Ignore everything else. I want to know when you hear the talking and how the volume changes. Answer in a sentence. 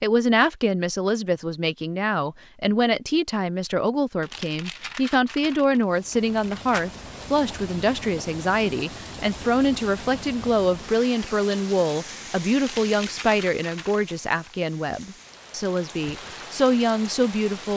You can hear the talking from 0.0 to 17.7 s, at a steady volume.